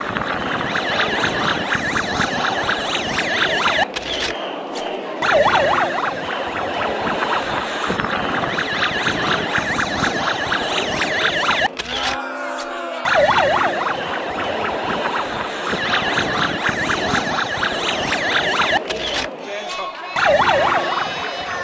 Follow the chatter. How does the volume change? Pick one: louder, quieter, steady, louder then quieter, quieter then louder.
steady.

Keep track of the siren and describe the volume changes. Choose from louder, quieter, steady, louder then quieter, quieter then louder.
steady.